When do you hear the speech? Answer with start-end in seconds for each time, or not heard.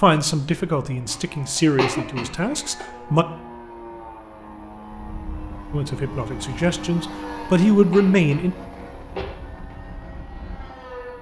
0.0-3.2, 5.7-8.6.